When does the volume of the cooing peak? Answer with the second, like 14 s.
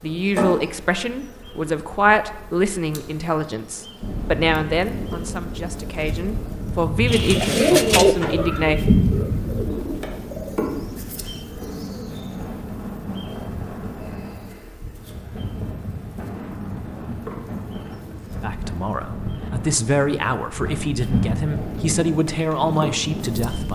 8 s.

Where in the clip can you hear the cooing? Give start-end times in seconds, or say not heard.
7.0-12.5.